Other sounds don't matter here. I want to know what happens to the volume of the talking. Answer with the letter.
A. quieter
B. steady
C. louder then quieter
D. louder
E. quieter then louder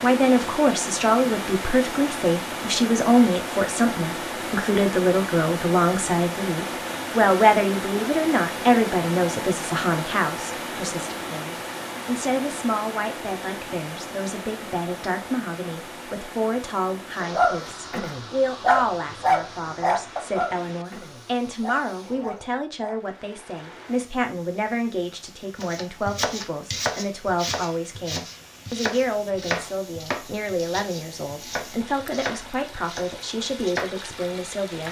A.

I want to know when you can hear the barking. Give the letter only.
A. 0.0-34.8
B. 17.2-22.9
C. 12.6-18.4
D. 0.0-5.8
B.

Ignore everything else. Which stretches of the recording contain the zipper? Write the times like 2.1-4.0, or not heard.
not heard.